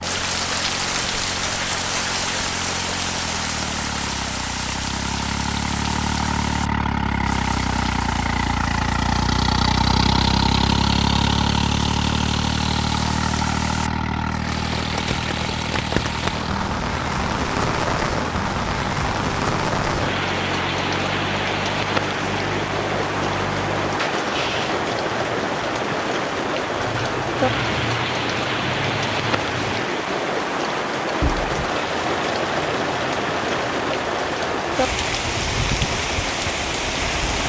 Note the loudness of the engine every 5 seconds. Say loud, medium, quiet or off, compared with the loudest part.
medium, loud, loud, medium, medium, medium, medium, medium.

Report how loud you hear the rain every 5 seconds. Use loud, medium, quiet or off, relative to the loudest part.
loud, medium, medium, loud, loud, loud, loud, loud.